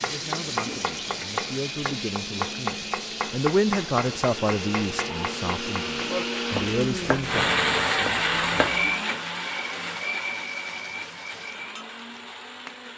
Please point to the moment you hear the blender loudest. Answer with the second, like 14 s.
8 s.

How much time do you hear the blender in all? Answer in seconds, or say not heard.
13 s.